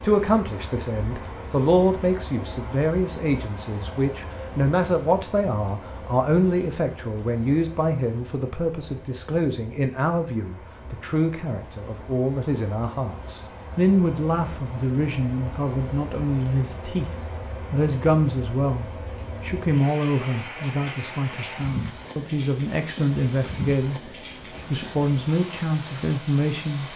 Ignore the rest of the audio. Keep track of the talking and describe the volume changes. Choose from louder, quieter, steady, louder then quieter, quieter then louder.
steady.